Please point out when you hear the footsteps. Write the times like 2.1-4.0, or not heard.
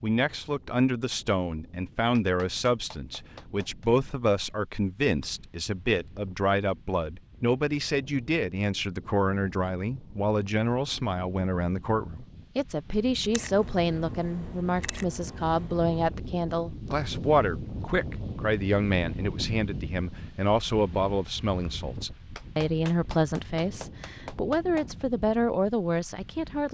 not heard.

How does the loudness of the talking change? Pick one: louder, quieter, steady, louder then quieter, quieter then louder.
steady.